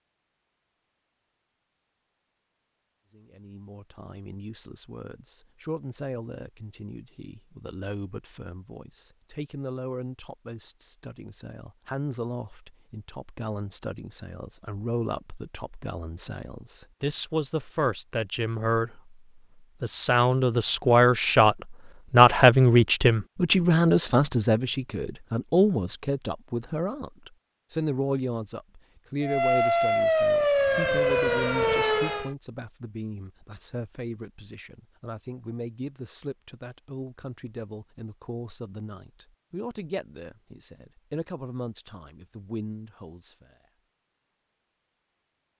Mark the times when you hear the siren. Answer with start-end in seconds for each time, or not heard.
29.2-32.4.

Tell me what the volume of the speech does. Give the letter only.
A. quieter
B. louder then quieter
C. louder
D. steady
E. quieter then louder
B.